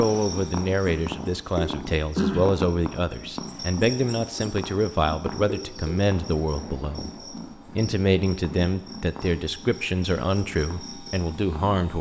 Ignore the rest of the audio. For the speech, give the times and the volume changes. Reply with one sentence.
You can hear the speech from 0.0 to 7.1 s, at a steady volume; and from 7.8 to 11.9 s, at a steady volume.